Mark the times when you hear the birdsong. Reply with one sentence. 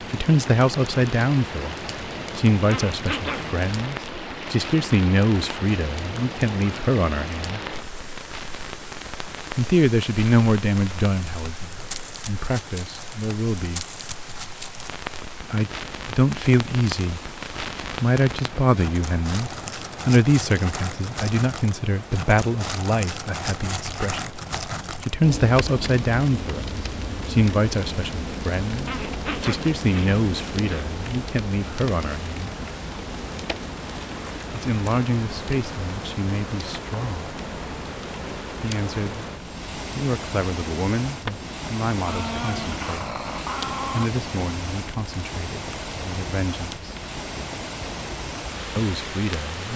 The birdsong can't be heard in this clip.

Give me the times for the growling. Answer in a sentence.
The growling can be heard from 2.6 to 3.5 s, from 28.9 to 30.9 s and from 42.0 to 44.1 s.